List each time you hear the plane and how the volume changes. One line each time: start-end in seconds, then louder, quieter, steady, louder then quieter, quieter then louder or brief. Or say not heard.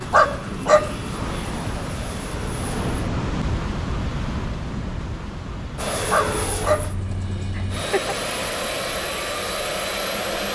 0.0-2.9 brief
5.8-10.5 quieter then louder.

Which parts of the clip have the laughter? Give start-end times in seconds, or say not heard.
7.5-8.2.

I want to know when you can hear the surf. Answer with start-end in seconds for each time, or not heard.
0.0-10.5.